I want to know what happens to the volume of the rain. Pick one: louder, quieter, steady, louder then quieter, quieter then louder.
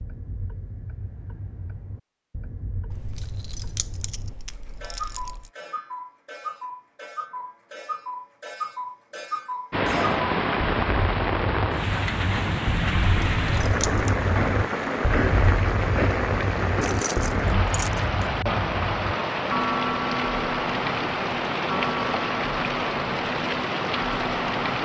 steady.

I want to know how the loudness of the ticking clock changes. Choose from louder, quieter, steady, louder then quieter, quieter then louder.
louder.